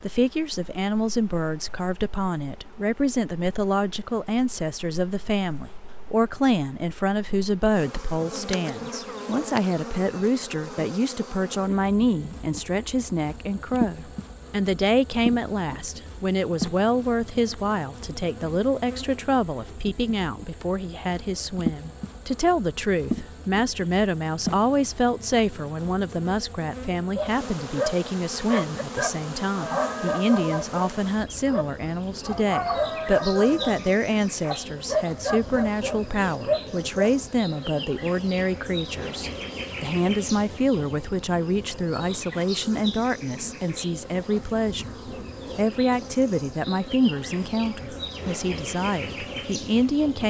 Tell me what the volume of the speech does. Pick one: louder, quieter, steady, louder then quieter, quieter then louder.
steady.